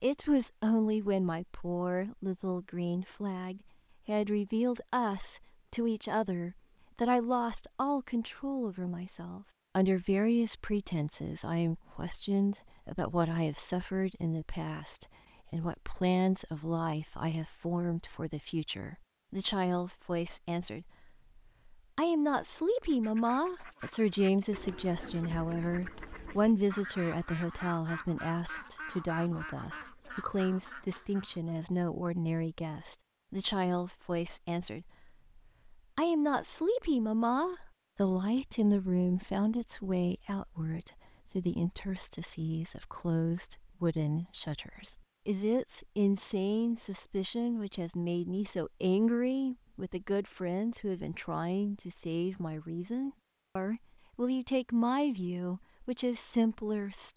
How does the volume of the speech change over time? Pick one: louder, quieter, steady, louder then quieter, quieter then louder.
steady.